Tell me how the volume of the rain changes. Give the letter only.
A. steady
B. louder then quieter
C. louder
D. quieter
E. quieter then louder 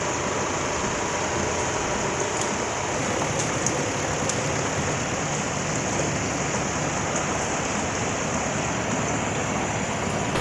A.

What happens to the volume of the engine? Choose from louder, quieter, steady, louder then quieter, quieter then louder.
steady.